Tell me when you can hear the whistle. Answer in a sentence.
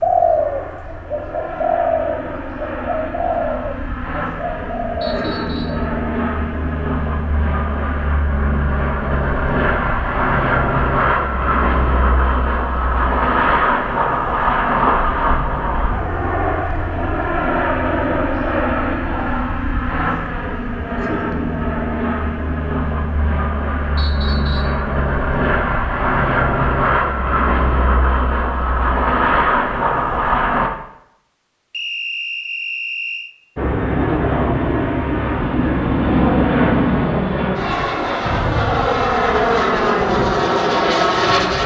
The whistle can be heard from 5.0 to 5.8 s, from 23.9 to 24.8 s and from 31.7 to 33.4 s.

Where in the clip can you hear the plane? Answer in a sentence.
You can hear the plane from 0.0 to 30.7 s and from 33.5 to 41.6 s.